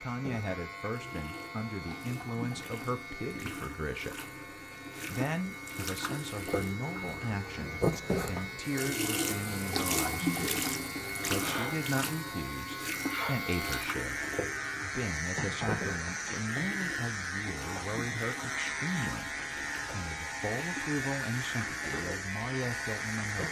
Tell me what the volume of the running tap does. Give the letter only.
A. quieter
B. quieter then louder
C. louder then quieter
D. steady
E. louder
C.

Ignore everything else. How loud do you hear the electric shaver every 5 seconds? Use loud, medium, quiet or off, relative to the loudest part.
medium, medium, loud, loud, loud.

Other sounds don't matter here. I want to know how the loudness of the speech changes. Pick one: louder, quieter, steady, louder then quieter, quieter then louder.
steady.